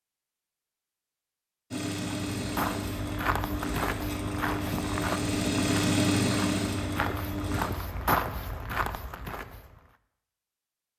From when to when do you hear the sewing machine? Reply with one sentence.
You can hear the sewing machine from 1.7 to 7.7 s.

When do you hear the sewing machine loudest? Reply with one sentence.
The loudest moment of the sewing machine is at 6 seconds.